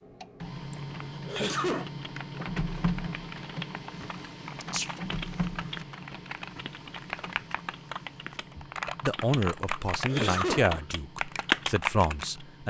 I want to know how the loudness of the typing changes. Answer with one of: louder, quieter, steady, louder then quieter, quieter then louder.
louder.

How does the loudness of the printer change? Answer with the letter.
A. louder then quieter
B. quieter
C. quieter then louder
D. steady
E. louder
B.